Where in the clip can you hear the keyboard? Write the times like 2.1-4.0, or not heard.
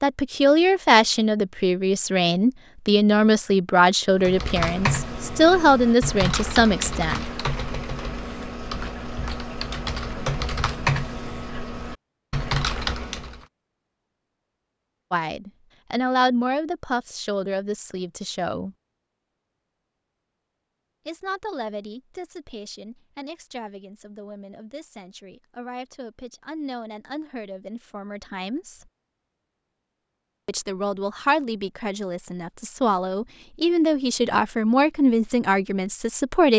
4.2-13.4.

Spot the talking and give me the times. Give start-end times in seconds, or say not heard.
0.0-7.2, 15.1-18.8, 21.1-28.9, 30.4-36.5.